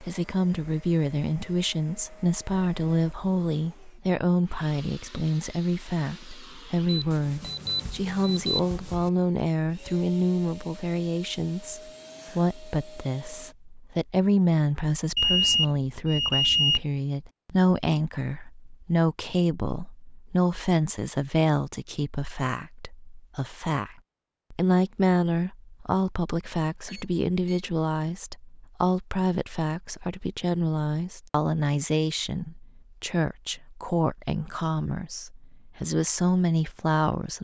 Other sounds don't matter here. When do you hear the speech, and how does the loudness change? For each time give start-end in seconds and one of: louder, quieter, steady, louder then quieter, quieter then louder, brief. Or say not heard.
0.0-37.3 steady.